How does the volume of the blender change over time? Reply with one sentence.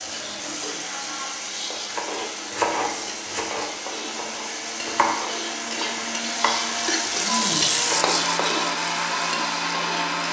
The volume of the blender goes up.